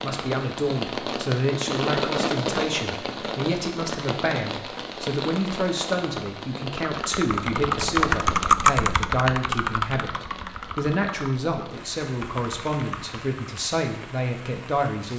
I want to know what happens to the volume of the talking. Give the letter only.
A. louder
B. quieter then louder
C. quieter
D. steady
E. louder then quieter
D.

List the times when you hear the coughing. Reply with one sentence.
The coughing can't be heard in this clip.